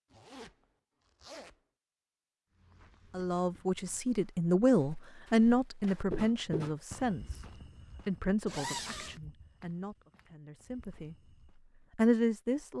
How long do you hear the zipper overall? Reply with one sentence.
You can hear the zipper for 2 seconds altogether.